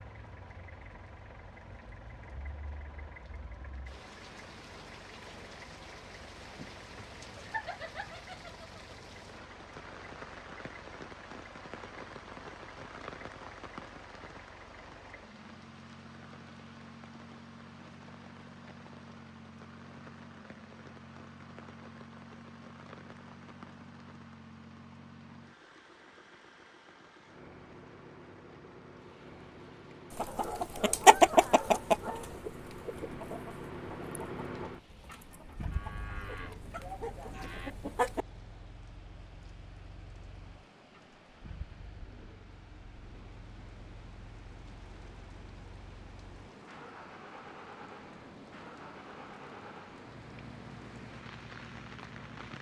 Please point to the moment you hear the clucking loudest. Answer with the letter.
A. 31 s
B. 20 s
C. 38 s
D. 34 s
A.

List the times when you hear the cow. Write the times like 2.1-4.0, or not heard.
35.7-37.8.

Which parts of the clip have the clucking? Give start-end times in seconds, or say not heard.
30.1-38.2.